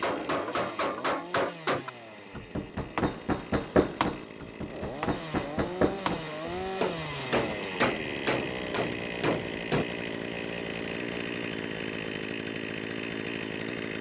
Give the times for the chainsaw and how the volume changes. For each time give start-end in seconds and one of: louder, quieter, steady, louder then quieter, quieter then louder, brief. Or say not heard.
0.0-13.9 louder.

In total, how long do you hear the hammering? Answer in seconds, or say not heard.
10 s.